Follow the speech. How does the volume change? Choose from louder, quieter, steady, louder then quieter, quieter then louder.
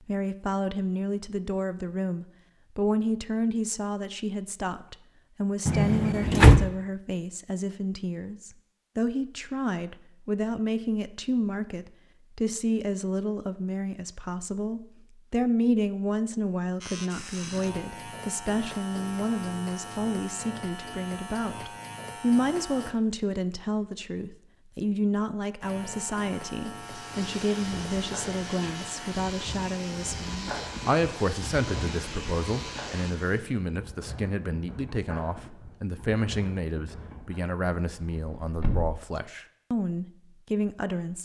steady.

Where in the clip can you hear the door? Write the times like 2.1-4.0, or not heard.
5.7-6.7, 37.9-39.0.